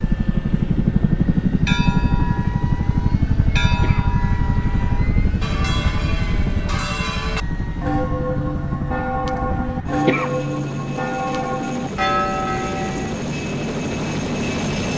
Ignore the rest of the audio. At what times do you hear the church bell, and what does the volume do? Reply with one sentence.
You can hear the church bell from 1.6 to 13.2 s, getting louder.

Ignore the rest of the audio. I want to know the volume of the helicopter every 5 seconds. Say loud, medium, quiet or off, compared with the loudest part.
loud, medium, medium.